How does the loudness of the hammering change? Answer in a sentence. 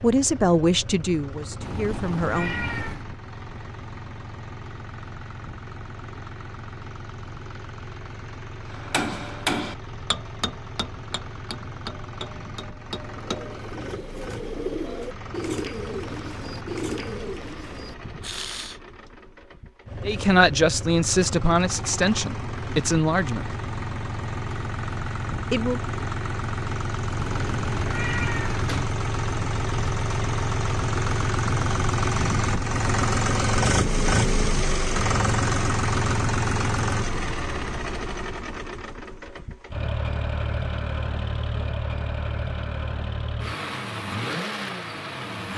The volume of the hammering goes down.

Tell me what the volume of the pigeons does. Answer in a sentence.
The volume of the pigeons goes up, then down.